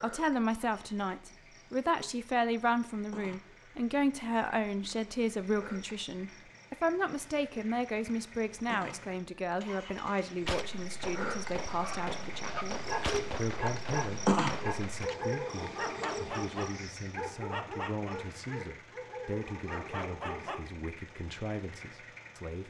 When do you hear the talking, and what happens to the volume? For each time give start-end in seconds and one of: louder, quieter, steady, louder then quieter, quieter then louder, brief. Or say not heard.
0.0-22.6 quieter.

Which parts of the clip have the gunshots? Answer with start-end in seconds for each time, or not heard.
10.4-15.1.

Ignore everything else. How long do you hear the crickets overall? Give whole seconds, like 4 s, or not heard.
17 s.